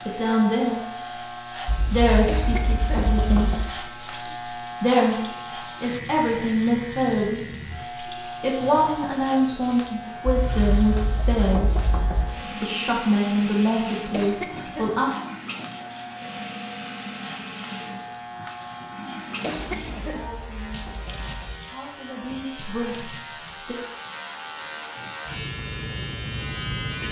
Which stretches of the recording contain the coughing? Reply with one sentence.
You can hear the coughing from 2.2 to 3.1 s, from 14.1 to 15.0 s and from 19.4 to 20.2 s.